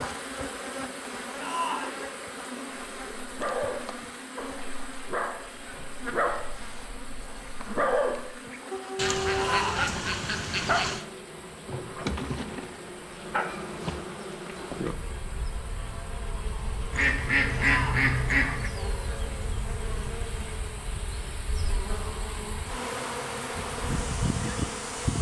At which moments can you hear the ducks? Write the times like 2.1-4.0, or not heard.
8.9-11.1, 16.9-18.7.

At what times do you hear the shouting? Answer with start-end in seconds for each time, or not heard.
1.4-2.0, 9.3-9.9, 17.6-18.1.